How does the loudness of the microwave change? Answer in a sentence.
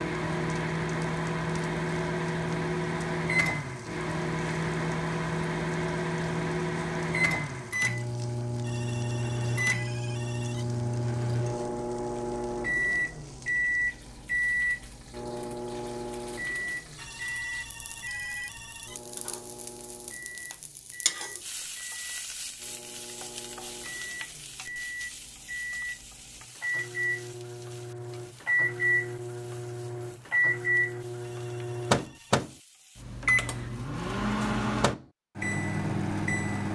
The loudness of the microwave goes down, then up.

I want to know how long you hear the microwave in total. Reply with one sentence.
You can hear the microwave for 37 seconds altogether.